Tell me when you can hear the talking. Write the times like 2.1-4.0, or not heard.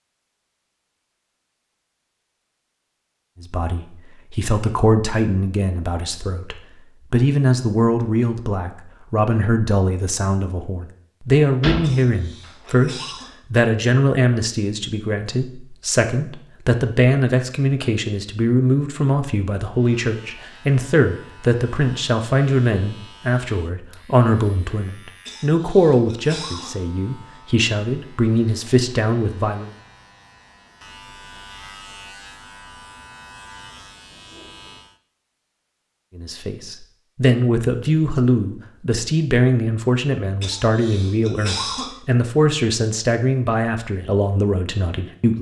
3.4-29.7, 36.1-45.3.